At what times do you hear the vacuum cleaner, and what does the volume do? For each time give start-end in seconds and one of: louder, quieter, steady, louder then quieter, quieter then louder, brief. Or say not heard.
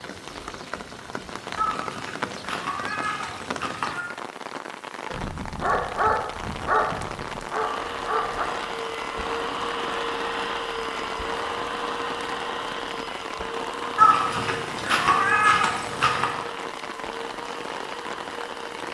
7.5-18.8 quieter.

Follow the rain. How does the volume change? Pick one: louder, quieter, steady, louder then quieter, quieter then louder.
steady.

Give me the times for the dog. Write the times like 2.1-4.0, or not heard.
5.1-8.4.